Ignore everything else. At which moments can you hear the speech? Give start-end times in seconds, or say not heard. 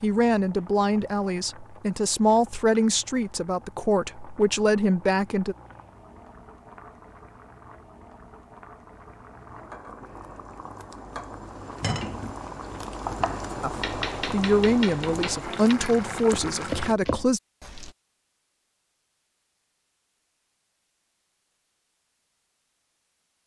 0.0-5.5, 13.6-17.4.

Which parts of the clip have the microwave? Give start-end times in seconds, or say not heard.
not heard.